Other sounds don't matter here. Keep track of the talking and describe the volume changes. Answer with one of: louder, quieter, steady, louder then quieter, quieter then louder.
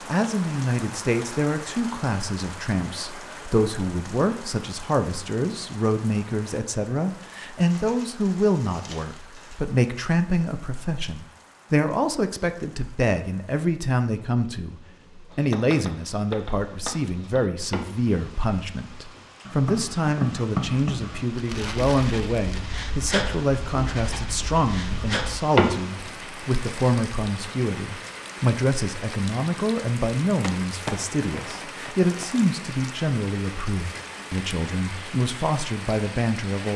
steady.